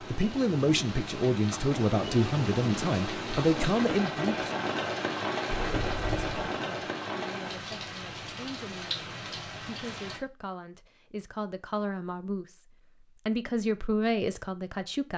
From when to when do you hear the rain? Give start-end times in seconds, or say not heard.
0.0-10.2.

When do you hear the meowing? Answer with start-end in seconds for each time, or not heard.
5.5-6.5.